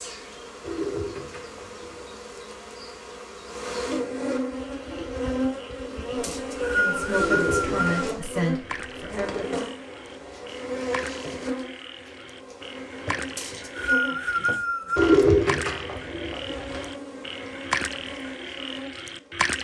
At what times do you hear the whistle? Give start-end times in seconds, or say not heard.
6.2-8.1, 13.3-15.2.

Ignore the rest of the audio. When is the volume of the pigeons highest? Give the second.
15 s.